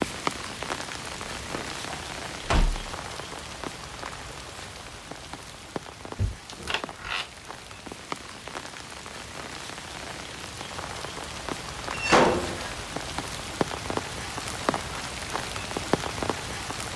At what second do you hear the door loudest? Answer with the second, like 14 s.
12 s.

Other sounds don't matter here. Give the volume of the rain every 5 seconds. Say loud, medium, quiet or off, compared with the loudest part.
loud, medium, loud, loud.